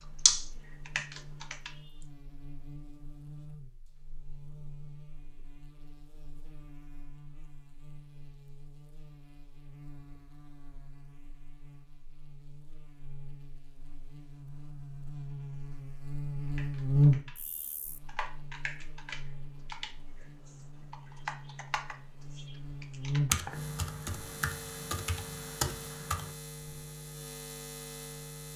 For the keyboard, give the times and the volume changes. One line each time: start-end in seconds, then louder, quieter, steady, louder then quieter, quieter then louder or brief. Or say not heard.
0.0-1.7 brief
16.4-26.9 louder.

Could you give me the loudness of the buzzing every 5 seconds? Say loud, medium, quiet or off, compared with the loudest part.
quiet, quiet, quiet, loud, medium, quiet.